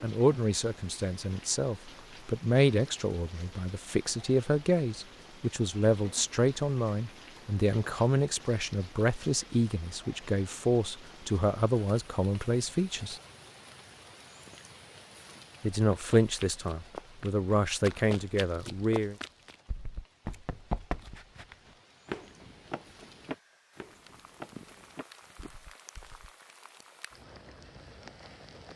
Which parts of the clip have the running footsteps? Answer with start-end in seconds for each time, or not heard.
15.8-26.3.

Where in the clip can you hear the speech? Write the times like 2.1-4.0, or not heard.
0.0-13.2, 15.6-19.1.